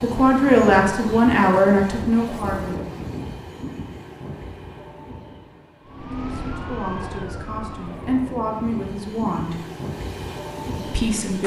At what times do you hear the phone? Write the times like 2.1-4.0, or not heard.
not heard.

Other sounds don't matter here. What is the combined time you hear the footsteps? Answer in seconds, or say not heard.
not heard.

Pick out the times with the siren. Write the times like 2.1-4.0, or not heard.
5.8-8.2.